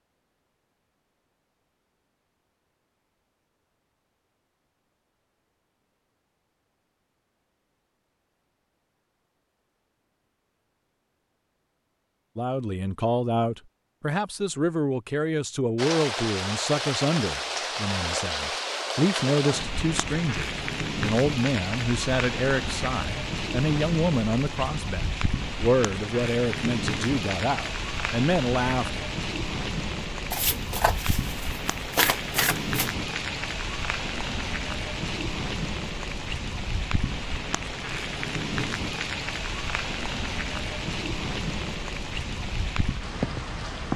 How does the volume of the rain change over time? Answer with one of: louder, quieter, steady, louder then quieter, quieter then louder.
steady.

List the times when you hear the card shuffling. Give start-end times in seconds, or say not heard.
30.3-32.9.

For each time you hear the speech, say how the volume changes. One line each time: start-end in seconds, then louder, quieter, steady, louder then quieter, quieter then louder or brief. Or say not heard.
12.3-29.1 steady.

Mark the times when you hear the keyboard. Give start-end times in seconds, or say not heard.
not heard.